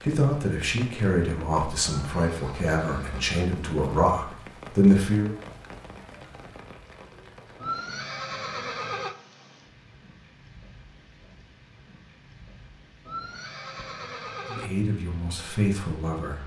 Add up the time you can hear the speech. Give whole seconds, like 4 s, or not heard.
7 s.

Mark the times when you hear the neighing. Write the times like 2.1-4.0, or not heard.
2.0-3.5, 7.6-9.2, 13.1-14.7.